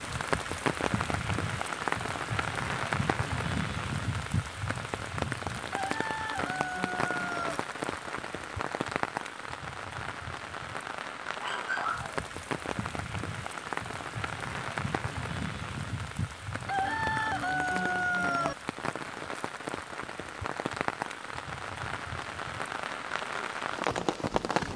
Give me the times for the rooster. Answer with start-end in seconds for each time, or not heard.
5.7-7.6, 16.6-18.6.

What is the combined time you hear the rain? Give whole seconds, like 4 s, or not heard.
25 s.